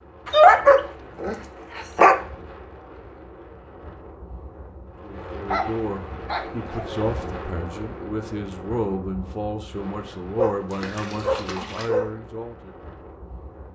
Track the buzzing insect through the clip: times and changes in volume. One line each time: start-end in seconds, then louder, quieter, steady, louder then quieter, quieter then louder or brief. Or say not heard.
not heard.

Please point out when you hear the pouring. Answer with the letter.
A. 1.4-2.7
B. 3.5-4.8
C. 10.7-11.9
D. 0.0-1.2
C.